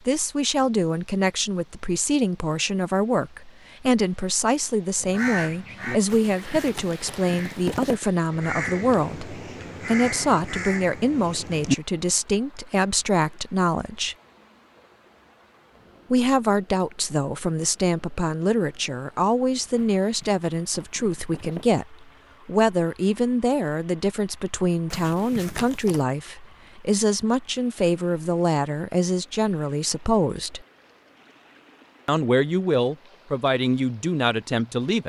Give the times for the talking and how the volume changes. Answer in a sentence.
The talking can be heard from 0.1 to 14.2 s, at a steady volume; from 16.1 to 30.6 s, at a steady volume; and briefly from 32.0 to 35.0 s.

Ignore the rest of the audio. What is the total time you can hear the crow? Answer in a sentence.
You can hear the crow for 7 seconds altogether.